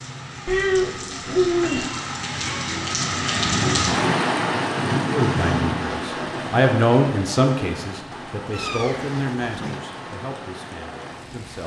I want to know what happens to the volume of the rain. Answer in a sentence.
The volume of the rain goes up, then down.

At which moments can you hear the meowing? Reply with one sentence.
The meowing can be heard from 0.5 to 1.9 s and from 8.5 to 9.8 s.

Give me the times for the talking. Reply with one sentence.
You can hear the talking from 5.1 to 11.6 s.